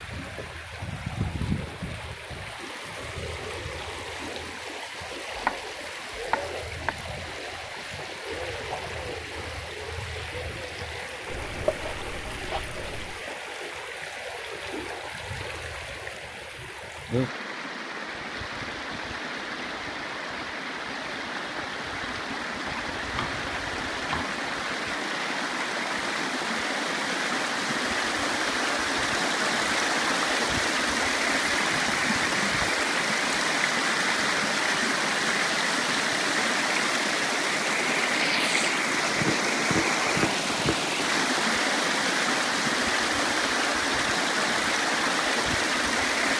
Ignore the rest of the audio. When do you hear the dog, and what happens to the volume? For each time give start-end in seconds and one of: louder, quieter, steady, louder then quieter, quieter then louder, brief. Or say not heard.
not heard.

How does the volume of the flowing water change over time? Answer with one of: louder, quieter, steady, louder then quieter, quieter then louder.
louder.